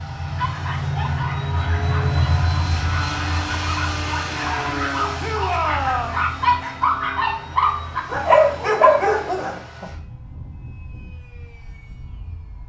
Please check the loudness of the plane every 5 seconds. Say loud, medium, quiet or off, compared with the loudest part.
loud, medium, quiet.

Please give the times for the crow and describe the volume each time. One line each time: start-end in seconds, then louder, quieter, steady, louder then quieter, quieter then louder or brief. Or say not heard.
not heard.